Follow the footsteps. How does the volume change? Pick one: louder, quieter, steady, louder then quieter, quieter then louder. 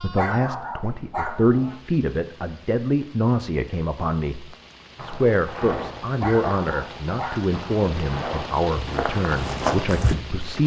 quieter then louder.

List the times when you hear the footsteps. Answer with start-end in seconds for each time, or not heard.
5.0-10.2.